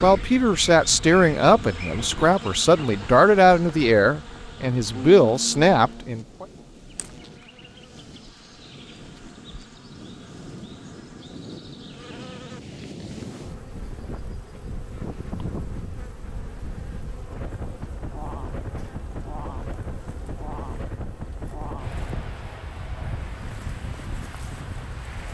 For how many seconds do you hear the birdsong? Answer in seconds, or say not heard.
not heard.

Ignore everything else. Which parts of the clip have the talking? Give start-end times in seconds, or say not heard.
0.0-6.5.